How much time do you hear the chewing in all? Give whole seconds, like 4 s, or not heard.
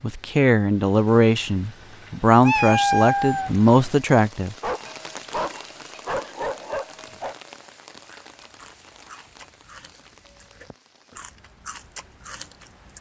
5 s.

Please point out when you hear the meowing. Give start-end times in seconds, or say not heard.
2.4-3.5.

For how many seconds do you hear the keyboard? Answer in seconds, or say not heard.
not heard.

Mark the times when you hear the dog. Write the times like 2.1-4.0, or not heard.
4.6-7.3.